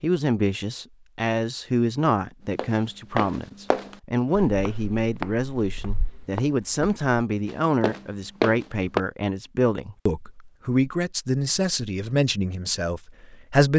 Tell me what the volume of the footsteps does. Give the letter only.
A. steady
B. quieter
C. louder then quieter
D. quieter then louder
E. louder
D.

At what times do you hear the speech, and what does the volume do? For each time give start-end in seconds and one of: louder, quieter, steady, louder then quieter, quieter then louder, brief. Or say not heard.
0.0-13.7 steady.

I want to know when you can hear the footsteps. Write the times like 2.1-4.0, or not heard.
2.5-9.0.